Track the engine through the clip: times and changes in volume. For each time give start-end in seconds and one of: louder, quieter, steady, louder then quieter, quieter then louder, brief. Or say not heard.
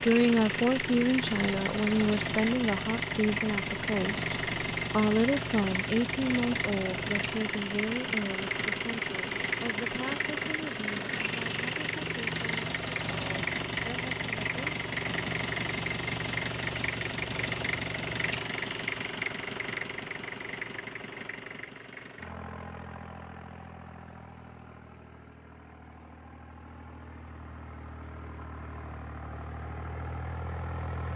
0.0-31.1 quieter.